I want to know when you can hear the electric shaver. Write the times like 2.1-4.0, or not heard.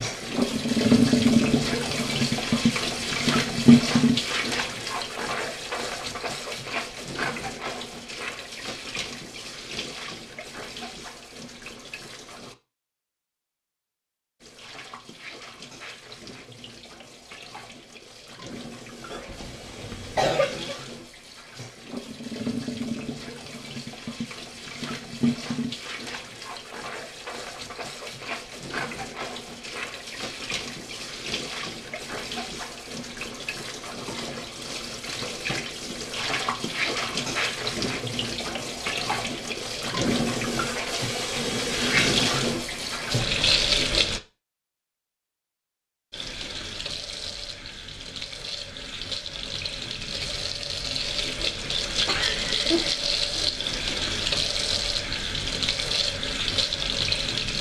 not heard.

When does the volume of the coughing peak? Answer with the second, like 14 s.
20 s.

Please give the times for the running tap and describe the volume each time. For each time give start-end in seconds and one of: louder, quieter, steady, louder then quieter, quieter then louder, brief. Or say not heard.
0.0-12.6 quieter
14.4-44.2 louder
46.1-57.5 louder.